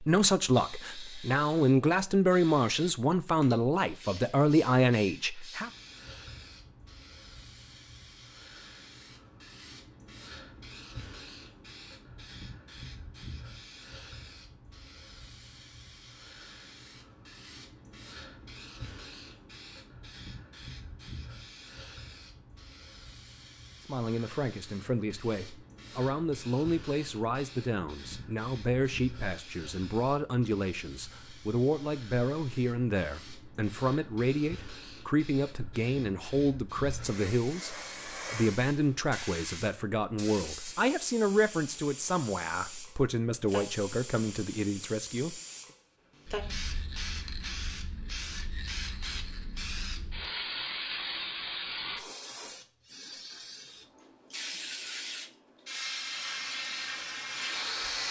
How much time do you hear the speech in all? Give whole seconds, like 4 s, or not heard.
27 s.